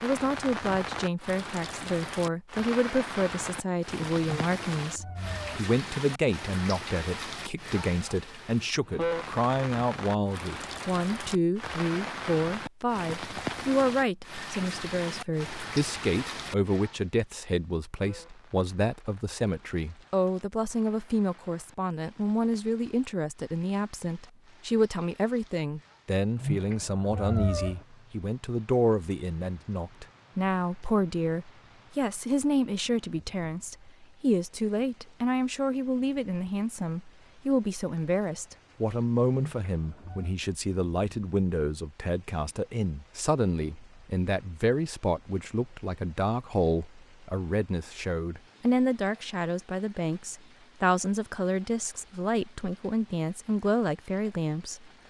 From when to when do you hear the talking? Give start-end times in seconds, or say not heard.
0.0-54.9.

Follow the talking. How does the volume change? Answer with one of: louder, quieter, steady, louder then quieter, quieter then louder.
steady.